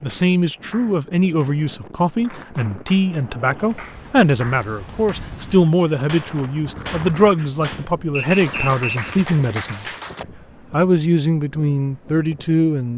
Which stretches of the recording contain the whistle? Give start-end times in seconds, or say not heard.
8.1-9.1.